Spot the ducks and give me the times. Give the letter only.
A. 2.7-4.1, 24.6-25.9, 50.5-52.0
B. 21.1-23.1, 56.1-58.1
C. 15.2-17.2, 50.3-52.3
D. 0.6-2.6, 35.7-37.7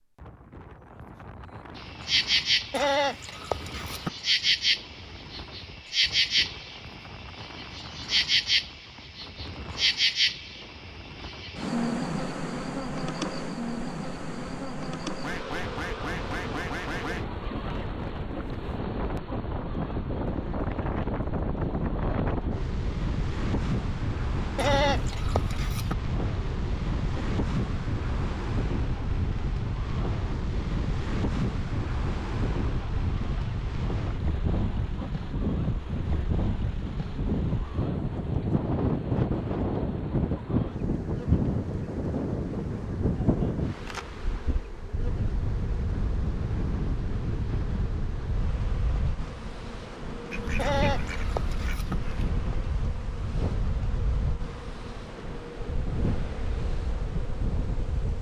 C.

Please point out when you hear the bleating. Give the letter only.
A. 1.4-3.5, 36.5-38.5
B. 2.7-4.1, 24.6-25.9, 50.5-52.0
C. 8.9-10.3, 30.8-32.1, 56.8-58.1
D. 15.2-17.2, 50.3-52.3
B.